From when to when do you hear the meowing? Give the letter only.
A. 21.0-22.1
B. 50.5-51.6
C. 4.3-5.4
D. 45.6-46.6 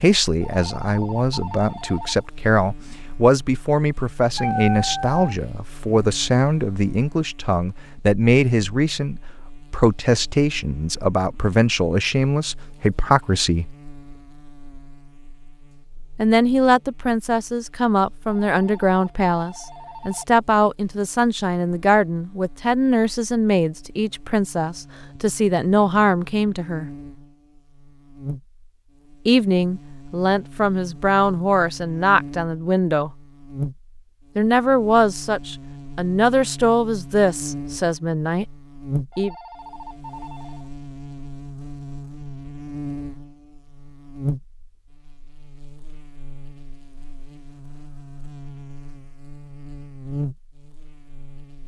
C.